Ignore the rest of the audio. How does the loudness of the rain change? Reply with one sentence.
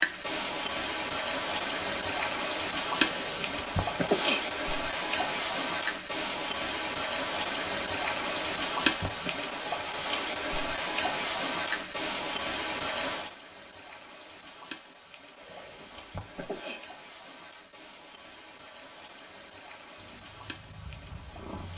The loudness of the rain goes down.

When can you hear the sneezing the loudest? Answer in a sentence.
The loudest moment of the sneezing is at 4 seconds.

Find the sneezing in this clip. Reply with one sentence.
You can hear the sneezing from 3.0 to 4.5 s, from 8.4 to 9.4 s and from 15.3 to 16.9 s.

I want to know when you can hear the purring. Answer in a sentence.
The purring can be heard from 19.9 to 21.7 s.